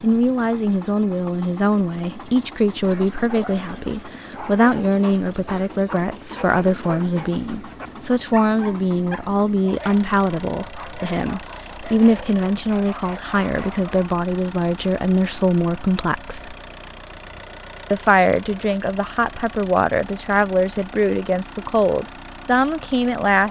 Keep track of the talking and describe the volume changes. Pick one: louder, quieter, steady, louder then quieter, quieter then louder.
steady.